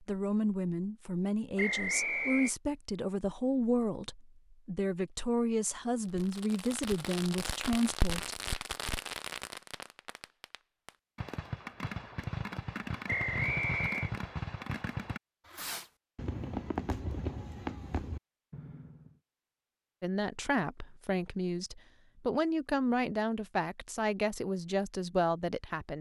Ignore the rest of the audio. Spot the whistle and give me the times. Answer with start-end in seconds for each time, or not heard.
1.6-2.5, 13.1-14.1.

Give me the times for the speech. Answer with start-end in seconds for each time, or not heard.
0.0-8.3, 20.0-25.9.